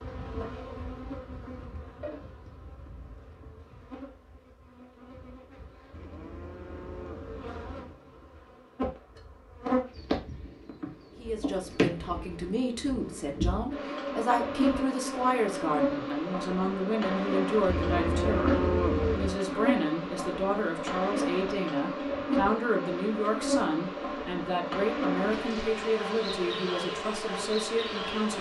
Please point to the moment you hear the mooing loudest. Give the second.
19 s.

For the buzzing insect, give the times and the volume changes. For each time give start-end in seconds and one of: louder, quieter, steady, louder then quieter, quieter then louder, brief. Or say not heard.
0.0-28.3 louder.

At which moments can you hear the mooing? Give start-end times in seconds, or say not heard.
5.9-8.0, 17.6-19.4.